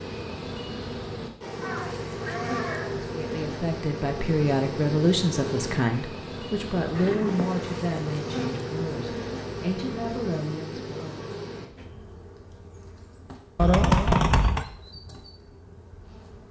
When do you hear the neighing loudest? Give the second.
14 s.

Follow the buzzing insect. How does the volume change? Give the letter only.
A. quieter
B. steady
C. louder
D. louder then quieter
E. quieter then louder
A.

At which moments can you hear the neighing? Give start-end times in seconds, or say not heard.
1.6-3.0, 7.0-7.9, 13.6-14.7.